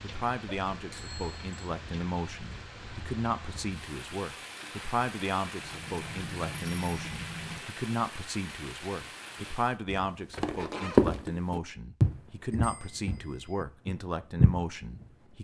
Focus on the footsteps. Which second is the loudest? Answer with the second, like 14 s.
11 s.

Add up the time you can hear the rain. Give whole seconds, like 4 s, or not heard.
10 s.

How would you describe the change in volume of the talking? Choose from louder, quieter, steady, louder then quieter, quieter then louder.
steady.